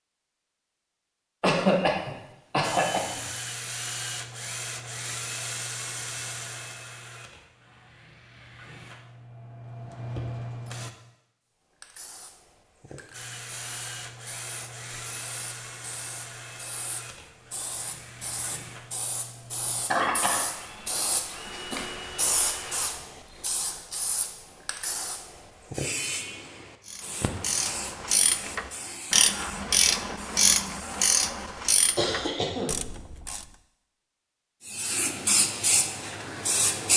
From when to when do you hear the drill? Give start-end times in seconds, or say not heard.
2.6-10.9, 13.1-23.1.